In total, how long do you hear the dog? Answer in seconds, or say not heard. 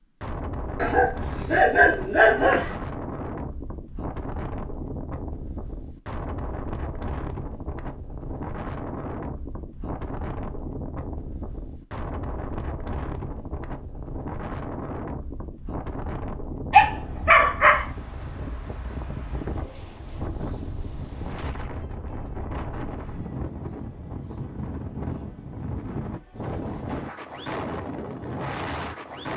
3 s.